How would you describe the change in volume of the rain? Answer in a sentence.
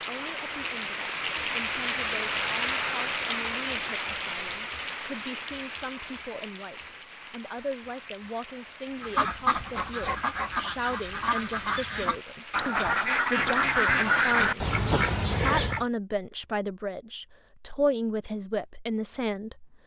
The volume of the rain goes down.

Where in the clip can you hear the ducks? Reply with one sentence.
You can hear the ducks from 9.0 to 15.8 s.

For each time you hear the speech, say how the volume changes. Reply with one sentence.
The speech can be heard from 0.0 to 19.7 s, getting louder.